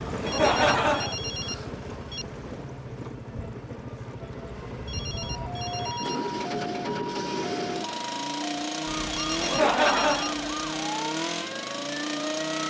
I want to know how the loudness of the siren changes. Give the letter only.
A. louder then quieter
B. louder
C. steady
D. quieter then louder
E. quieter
C.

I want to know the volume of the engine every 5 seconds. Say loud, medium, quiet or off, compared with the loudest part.
medium, loud, loud.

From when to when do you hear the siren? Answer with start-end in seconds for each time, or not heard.
5.2-12.6.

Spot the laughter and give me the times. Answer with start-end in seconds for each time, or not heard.
0.2-1.1, 9.4-10.3.